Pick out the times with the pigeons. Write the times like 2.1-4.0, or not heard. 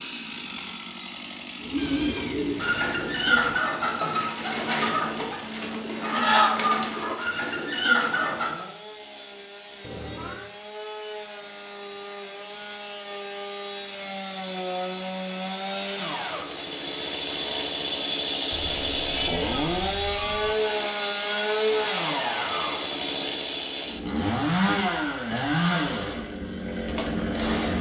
1.6-8.7.